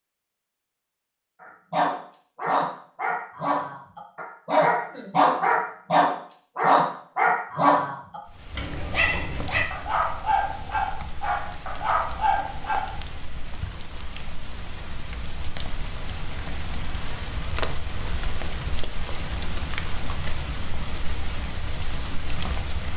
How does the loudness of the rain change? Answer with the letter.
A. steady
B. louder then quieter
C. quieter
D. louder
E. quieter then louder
D.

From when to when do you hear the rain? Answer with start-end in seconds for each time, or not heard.
8.2-22.9.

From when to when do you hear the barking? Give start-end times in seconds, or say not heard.
1.4-12.9.